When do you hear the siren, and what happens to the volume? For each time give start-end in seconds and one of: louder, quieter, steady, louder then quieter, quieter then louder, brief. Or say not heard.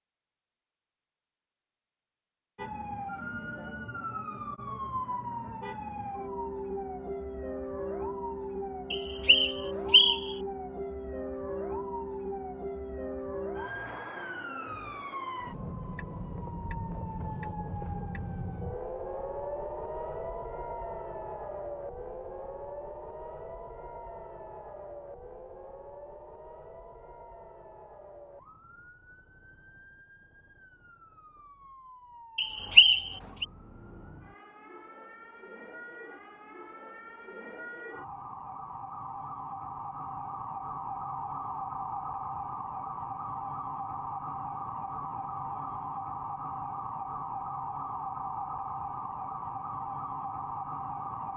2.5-51.3 quieter then louder.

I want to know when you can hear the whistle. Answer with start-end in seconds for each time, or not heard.
8.9-10.3, 32.4-33.5.